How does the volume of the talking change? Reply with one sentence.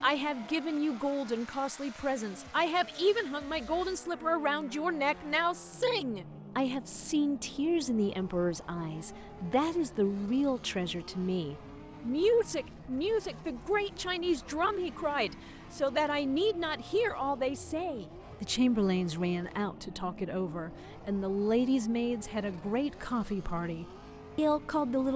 The volume of the talking stays about the same.